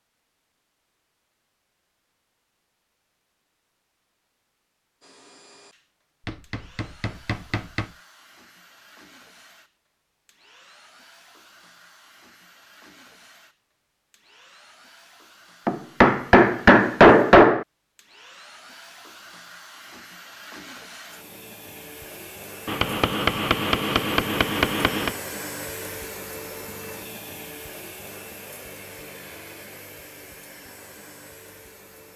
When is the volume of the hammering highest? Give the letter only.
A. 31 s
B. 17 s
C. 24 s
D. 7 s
B.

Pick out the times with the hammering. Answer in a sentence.
The hammering can be heard from 6.2 to 7.8 s, from 15.7 to 17.6 s and from 22.6 to 25.1 s.